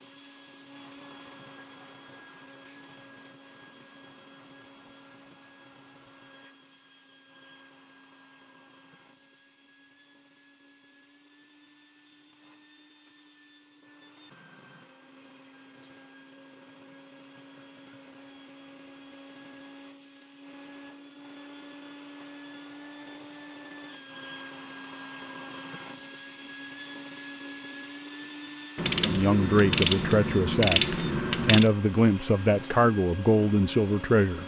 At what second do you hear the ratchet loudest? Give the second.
31 s.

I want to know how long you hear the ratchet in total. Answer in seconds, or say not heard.
3 s.